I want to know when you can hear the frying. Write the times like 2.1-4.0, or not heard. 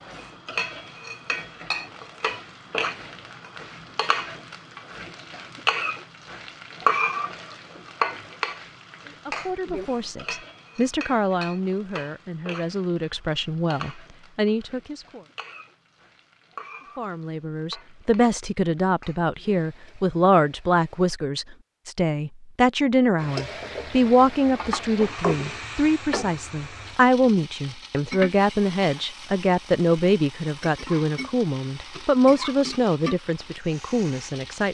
0.0-21.1, 23.1-34.6.